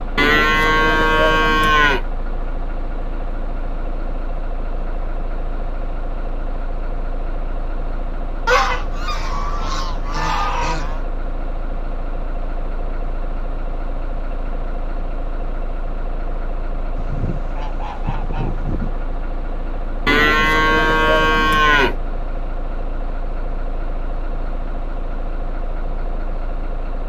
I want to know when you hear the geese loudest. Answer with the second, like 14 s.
9 s.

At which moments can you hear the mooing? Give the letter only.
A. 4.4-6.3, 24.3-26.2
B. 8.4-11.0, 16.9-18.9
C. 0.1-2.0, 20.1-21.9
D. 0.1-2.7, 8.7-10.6
C.